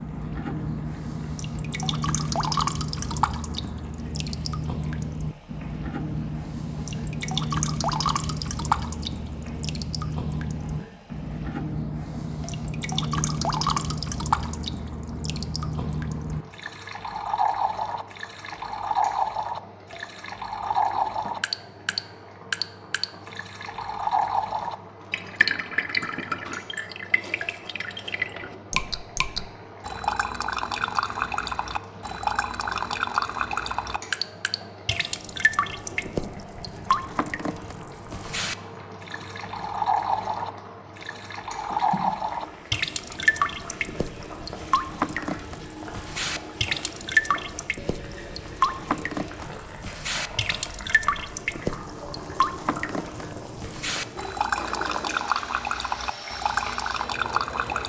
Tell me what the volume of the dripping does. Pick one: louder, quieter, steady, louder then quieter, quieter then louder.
steady.